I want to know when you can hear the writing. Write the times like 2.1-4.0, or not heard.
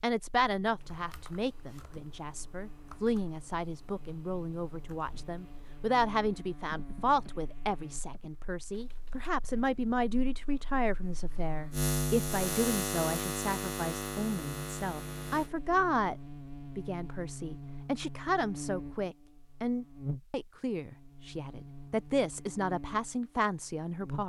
not heard.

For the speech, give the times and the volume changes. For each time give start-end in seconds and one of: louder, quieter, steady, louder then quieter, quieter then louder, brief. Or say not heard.
0.0-24.2 steady.